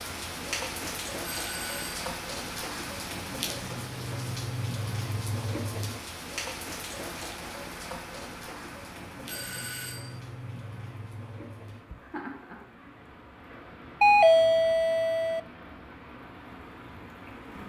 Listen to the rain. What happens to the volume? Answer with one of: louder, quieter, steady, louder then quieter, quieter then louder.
quieter.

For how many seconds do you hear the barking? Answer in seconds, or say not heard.
not heard.